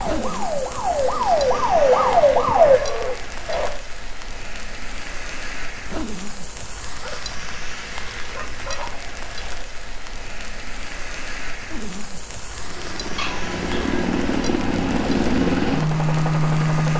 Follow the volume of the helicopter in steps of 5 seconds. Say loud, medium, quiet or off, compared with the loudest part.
off, off, medium, loud.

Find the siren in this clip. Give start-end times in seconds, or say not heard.
0.0-2.8.